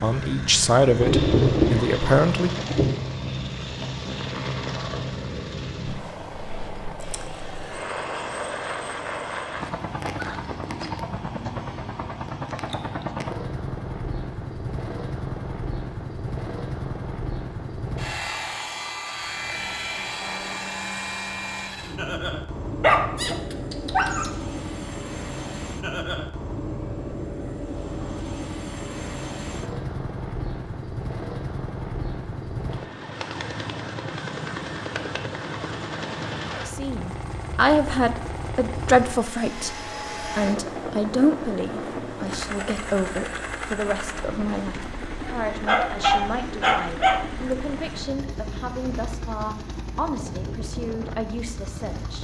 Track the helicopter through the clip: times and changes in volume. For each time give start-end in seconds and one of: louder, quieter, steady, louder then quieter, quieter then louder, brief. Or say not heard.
0.0-52.1 steady.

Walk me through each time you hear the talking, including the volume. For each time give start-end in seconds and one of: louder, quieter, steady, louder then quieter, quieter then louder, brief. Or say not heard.
0.0-2.5 brief
36.6-52.1 quieter.